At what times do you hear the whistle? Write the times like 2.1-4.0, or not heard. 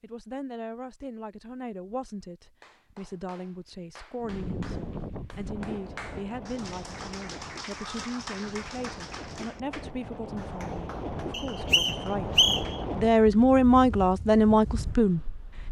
11.3-12.8.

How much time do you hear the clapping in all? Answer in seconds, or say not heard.
10 s.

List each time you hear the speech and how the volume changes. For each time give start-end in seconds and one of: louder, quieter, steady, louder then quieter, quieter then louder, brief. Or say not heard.
0.0-15.6 louder.